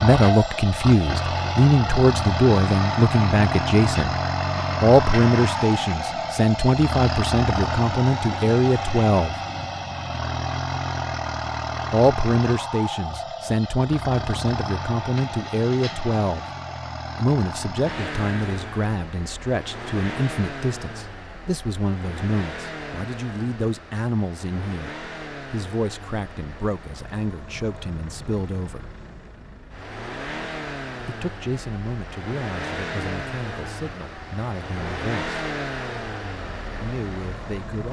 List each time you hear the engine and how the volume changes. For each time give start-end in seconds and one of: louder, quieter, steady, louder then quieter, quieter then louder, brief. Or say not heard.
0.0-37.8 quieter then louder.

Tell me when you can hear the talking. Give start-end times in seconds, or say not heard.
0.0-4.2, 4.8-9.3, 11.9-16.4, 17.1-28.9, 31.1-35.4, 36.8-37.8.